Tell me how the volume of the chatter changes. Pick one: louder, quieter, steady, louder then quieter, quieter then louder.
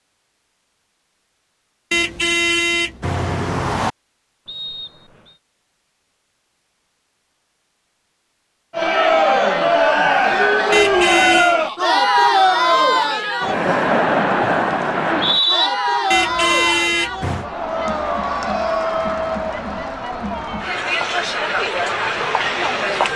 quieter.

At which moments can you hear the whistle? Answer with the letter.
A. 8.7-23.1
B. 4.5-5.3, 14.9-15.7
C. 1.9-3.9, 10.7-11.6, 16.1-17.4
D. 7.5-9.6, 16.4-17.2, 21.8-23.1
B.